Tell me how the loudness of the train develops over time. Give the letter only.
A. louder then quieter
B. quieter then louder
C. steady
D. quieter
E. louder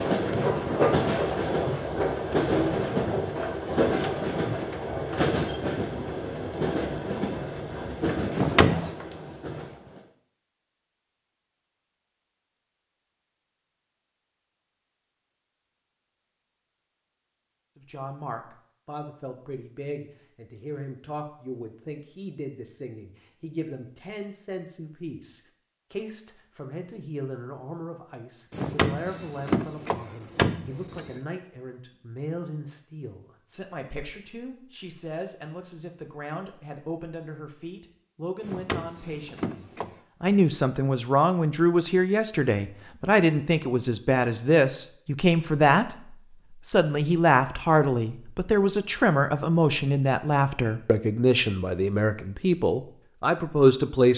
D.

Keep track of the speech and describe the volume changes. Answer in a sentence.
The volume of the speech goes up.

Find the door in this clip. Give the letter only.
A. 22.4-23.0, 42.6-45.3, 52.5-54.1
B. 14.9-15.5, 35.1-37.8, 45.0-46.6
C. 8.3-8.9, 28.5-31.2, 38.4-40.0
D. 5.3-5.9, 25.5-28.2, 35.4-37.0
C.